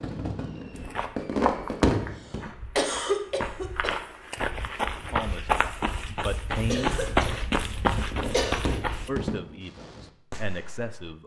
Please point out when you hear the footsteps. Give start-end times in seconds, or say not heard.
0.7-9.1.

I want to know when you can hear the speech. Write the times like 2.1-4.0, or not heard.
5.0-7.0, 9.1-11.2.